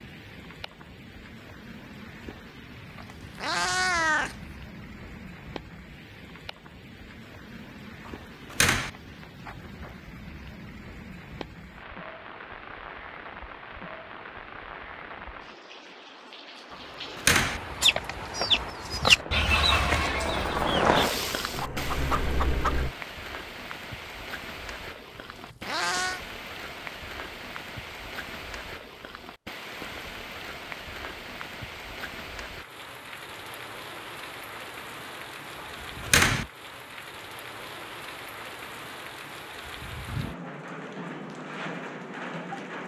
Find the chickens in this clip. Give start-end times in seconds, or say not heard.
17.8-22.9.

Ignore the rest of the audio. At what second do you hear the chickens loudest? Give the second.
19 s.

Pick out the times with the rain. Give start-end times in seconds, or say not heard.
0.0-42.8.